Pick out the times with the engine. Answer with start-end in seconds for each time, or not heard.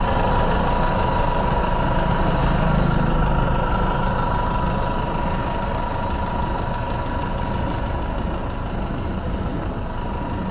0.0-10.4.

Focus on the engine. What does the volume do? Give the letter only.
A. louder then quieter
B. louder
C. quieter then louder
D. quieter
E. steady
D.